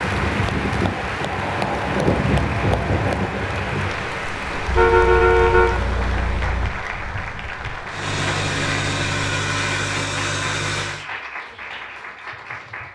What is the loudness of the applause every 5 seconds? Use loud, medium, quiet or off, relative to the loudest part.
loud, loud, medium.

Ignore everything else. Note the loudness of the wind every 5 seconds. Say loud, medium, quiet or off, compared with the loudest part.
loud, medium, off.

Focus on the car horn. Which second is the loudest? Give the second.
5 s.